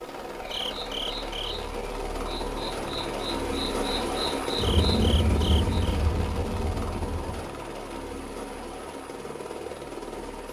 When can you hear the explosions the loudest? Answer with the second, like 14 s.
5 s.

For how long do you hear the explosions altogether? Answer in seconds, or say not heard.
3 s.